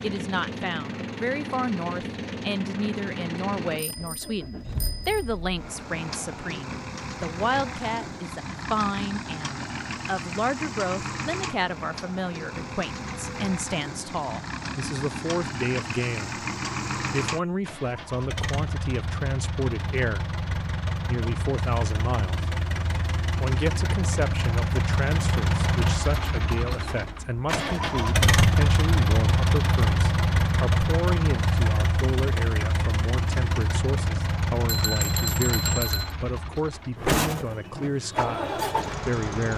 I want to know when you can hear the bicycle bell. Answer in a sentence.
The bicycle bell can be heard from 3.8 to 5.4 s and from 34.6 to 36.1 s.